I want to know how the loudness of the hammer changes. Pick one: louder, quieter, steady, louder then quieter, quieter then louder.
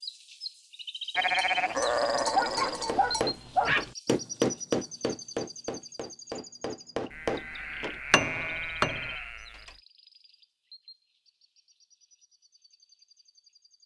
quieter then louder.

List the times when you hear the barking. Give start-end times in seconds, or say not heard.
2.4-3.9.